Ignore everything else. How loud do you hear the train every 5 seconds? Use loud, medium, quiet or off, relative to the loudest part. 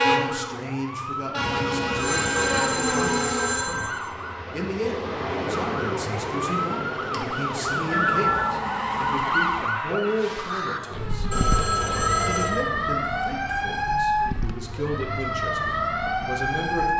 loud, medium, off, off.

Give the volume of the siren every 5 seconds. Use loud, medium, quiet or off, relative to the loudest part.
medium, loud, loud, loud.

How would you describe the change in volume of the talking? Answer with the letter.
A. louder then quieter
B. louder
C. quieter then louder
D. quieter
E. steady
E.